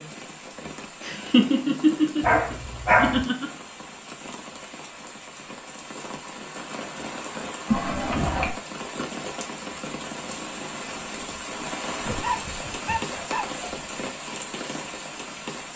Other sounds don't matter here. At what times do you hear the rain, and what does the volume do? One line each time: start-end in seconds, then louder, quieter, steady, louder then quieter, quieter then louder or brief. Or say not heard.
0.0-15.7 louder.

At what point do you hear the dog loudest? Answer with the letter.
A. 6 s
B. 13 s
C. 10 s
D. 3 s
D.